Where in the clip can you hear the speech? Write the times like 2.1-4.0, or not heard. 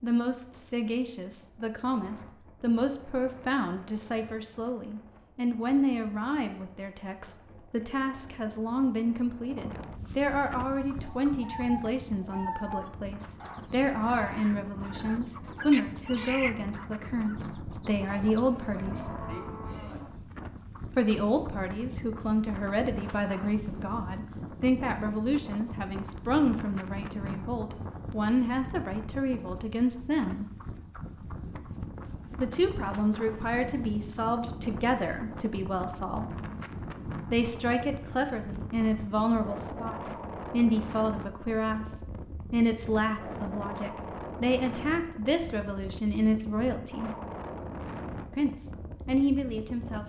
0.0-19.1, 20.9-30.4, 32.4-36.4, 37.3-47.1, 48.3-50.0.